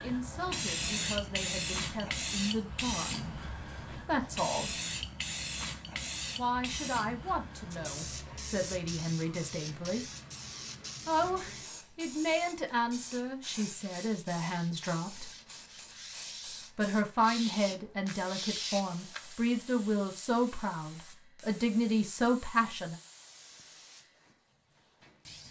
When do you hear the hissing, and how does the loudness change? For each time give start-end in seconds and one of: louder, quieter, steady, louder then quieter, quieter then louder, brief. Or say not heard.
0.0-25.4 quieter.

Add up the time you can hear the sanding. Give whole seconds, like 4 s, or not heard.
6 s.